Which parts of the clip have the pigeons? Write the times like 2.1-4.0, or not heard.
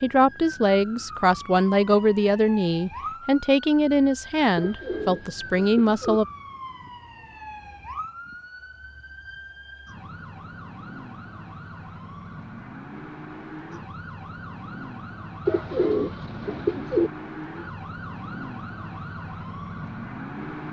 4.5-6.2, 15.4-17.1.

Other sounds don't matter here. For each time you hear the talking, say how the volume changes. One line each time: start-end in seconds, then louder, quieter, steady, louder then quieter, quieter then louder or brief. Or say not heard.
0.0-6.2 steady.